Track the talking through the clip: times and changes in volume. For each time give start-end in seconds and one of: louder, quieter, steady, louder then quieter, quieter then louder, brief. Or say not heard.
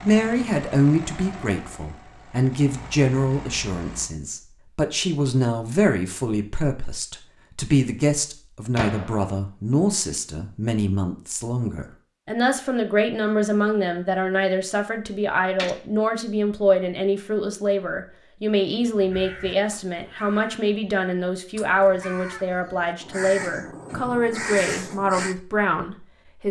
0.0-26.4 steady.